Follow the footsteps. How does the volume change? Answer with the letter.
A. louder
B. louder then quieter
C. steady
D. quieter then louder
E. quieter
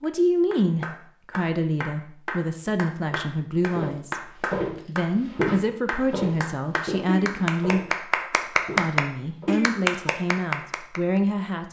E.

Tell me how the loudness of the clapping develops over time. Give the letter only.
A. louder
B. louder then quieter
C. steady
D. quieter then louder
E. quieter
A.